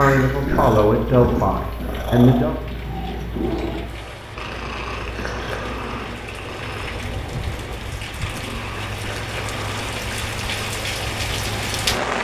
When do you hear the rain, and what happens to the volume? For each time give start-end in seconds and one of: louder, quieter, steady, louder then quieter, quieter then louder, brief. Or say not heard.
0.2-12.2 louder.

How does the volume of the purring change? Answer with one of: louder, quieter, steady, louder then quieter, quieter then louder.
quieter.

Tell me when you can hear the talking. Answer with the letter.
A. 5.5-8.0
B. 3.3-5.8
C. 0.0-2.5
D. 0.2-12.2
C.